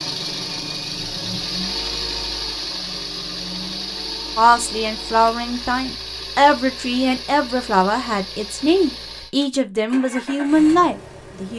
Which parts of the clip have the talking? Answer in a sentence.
You can hear the talking from 4.3 to 11.5 s.